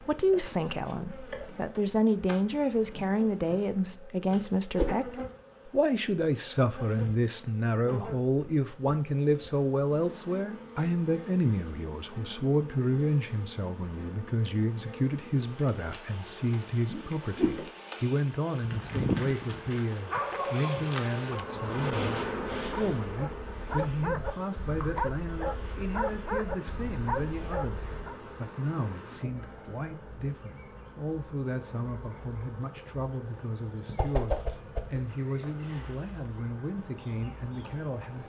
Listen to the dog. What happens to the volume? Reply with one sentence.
The loudness of the dog stays about the same.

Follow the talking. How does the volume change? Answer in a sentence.
The volume of the talking goes down.